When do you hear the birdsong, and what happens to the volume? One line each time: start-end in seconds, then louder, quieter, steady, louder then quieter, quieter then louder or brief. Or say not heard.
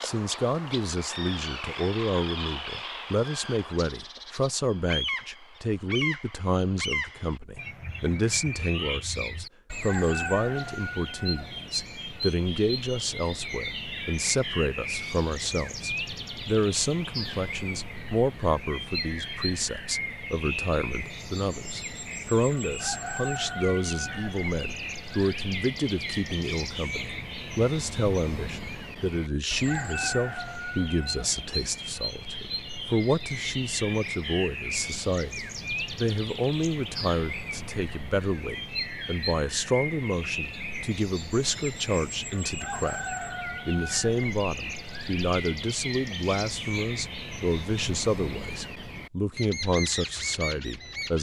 0.0-51.1 steady.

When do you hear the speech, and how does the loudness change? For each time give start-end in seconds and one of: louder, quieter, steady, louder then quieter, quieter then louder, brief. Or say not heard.
0.0-51.1 steady.